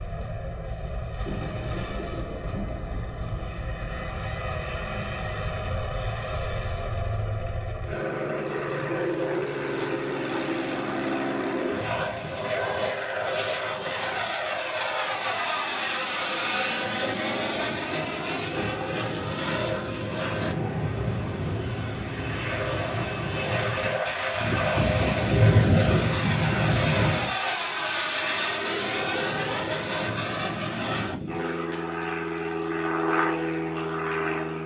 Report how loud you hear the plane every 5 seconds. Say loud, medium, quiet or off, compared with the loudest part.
medium, loud, loud, loud, loud, loud, loud.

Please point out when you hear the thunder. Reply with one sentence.
The thunder can be heard from 1.2 to 4.0 s and from 24.1 to 27.4 s.